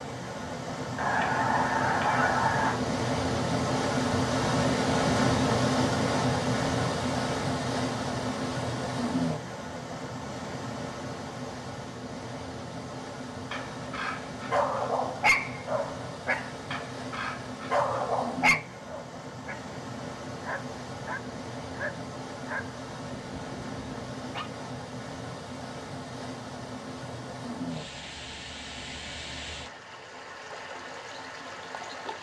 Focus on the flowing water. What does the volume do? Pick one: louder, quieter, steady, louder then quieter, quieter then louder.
quieter.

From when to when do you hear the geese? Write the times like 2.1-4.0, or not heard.
0.9-2.8.